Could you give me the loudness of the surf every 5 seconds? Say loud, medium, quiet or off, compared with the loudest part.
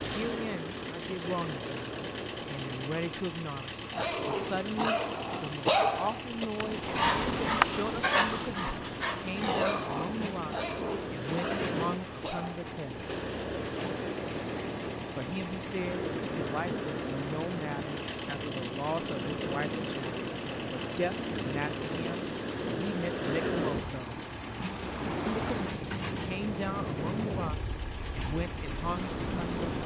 medium, medium, loud, loud, loud, loud.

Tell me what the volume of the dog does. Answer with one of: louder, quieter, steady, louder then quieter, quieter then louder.
quieter.